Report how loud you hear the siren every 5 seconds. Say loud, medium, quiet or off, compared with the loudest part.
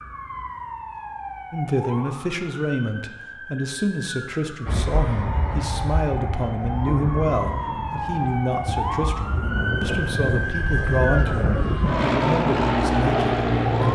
medium, loud, loud.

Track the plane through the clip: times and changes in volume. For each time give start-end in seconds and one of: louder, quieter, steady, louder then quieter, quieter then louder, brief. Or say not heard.
4.7-13.9 louder.